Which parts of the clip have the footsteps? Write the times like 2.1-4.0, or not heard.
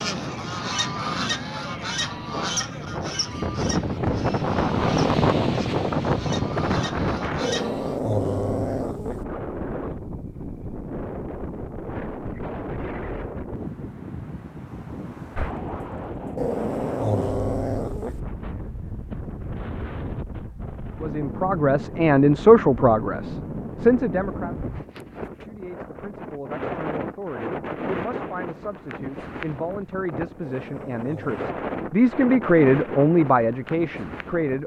not heard.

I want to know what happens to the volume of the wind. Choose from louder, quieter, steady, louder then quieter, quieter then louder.
quieter.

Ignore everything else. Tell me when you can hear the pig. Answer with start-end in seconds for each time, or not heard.
not heard.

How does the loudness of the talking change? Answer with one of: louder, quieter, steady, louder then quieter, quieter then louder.
quieter then louder.